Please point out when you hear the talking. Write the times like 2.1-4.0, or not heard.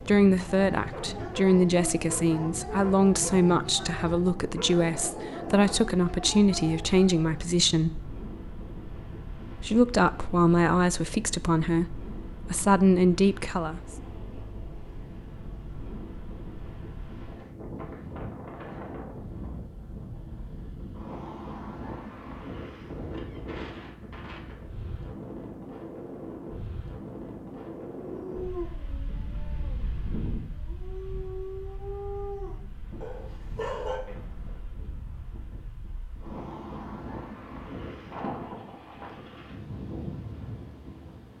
0.0-8.0, 9.6-13.8.